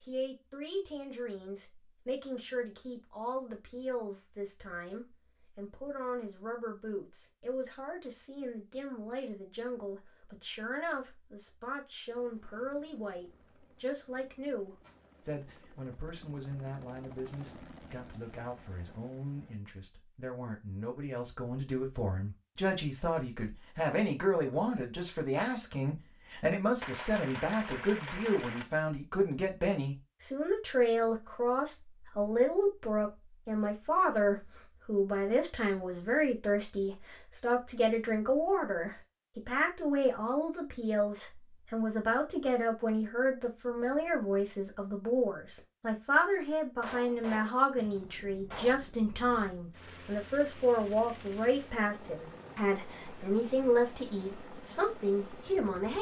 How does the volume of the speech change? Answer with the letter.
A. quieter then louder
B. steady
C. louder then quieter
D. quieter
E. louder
E.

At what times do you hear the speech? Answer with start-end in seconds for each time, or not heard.
0.0-55.9.